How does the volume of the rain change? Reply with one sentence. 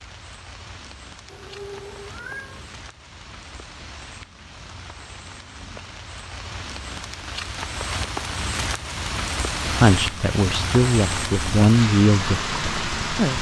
The volume of the rain goes up.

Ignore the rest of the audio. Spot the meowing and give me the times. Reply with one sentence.
The meowing can be heard from 1.2 to 2.8 s.